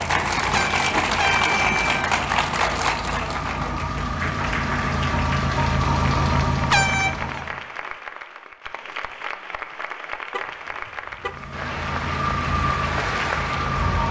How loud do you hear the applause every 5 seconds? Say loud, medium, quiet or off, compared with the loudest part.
loud, medium, medium.